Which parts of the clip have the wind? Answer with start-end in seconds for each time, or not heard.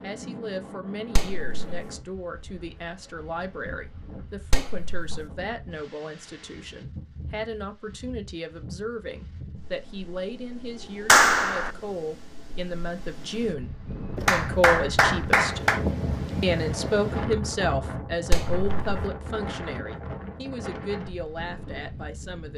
0.0-22.5.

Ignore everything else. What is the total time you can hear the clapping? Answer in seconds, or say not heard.
4 s.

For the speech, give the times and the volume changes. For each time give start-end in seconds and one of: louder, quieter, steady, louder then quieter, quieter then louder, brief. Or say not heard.
0.0-15.6 louder
16.4-22.5 quieter.